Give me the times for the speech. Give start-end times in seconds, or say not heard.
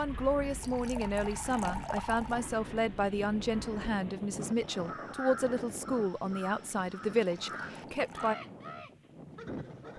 0.0-8.3.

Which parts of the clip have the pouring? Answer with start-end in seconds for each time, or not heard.
0.6-2.5, 7.2-8.4.